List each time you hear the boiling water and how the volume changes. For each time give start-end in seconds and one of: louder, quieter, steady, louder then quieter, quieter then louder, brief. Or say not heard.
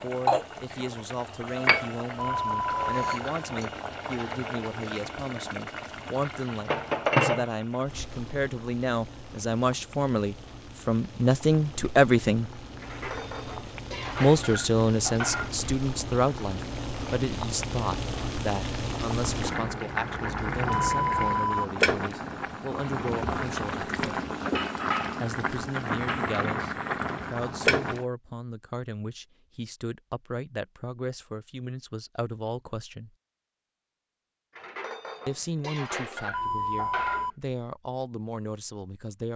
0.0-28.1 quieter then louder.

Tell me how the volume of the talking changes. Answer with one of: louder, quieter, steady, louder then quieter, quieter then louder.
louder then quieter.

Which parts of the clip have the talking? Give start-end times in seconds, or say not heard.
0.0-12.5, 14.2-24.2, 25.2-33.1, 35.2-39.3.